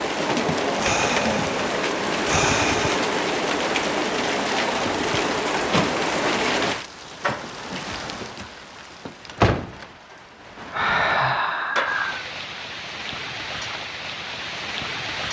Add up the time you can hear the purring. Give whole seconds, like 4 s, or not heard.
not heard.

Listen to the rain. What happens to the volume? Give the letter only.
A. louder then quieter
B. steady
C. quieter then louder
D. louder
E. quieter
E.